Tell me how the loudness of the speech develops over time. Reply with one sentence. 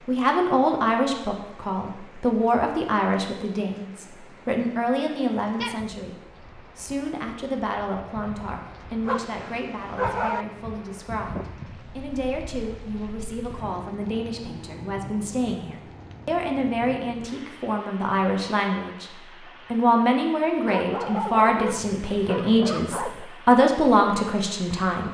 The loudness of the speech goes down, then up.